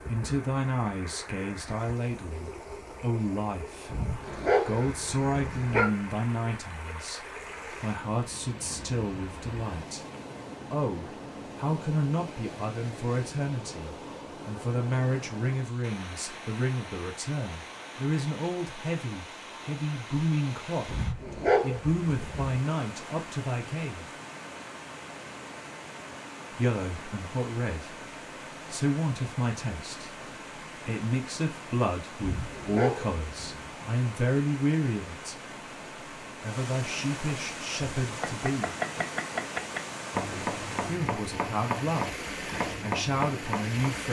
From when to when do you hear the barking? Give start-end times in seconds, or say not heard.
3.9-5.9, 20.9-22.6, 32.2-33.7.